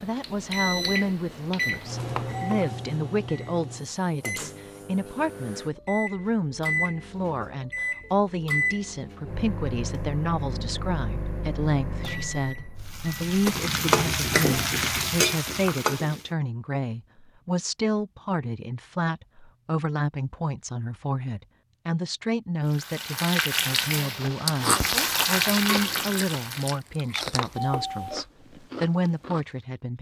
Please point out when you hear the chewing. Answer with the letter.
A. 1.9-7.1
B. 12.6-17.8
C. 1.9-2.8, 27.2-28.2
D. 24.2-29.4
D.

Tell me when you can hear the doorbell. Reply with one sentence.
You can hear the doorbell from 1.9 to 2.8 s and from 27.2 to 28.2 s.